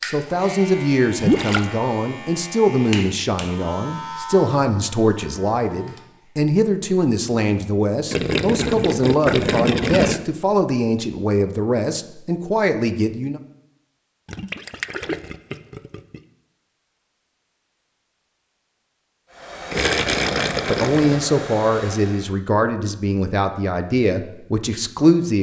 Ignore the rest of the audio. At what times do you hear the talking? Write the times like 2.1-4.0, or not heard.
0.0-13.4, 20.6-25.3.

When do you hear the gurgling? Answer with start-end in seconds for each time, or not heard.
1.2-1.6, 8.1-10.2, 14.2-16.2, 19.7-21.2.